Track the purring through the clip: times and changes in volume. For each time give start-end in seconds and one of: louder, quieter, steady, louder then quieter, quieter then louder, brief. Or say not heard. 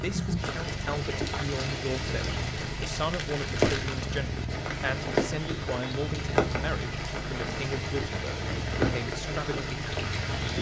0.0-10.5 steady.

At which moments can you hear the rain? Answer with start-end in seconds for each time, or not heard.
0.0-10.5.